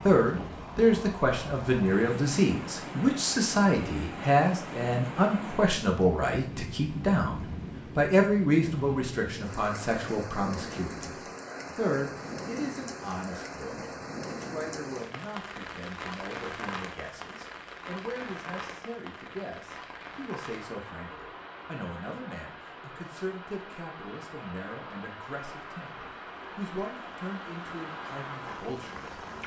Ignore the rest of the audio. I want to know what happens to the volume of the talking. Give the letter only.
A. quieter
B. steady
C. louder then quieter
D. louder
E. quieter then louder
A.